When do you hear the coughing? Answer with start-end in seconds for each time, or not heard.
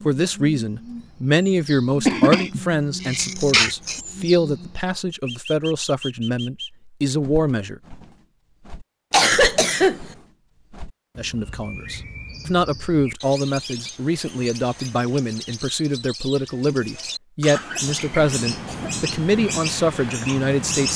2.0-4.0, 9.1-10.1, 17.5-19.0.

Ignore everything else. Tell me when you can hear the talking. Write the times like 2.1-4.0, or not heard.
0.1-7.8, 11.2-20.9.